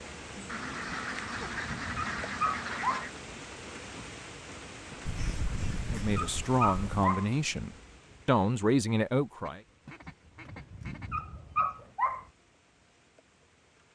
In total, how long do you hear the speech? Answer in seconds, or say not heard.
4 s.